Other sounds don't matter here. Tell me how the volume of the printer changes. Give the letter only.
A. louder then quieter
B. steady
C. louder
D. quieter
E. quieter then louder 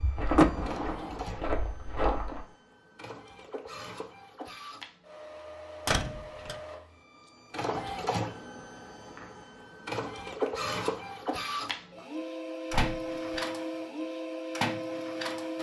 C.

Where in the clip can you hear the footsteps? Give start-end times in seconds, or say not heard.
0.0-2.5.